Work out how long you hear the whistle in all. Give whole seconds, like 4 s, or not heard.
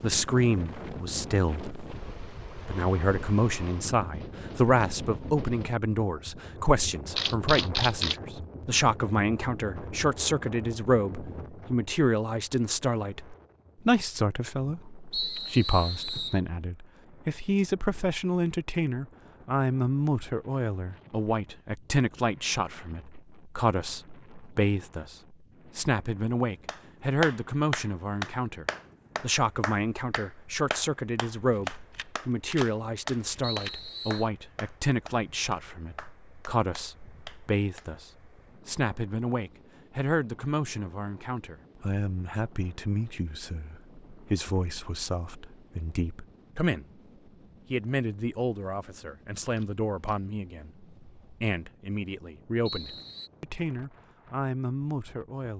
3 s.